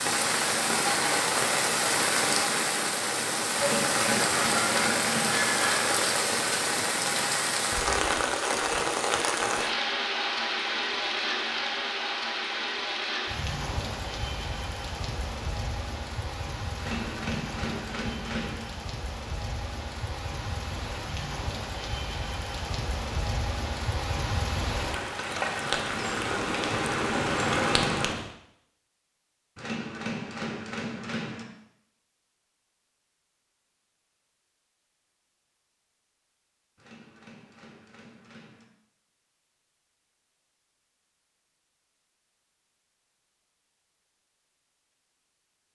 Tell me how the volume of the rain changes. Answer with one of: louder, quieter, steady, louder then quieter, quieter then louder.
quieter then louder.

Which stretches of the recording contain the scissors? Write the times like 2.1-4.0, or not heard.
not heard.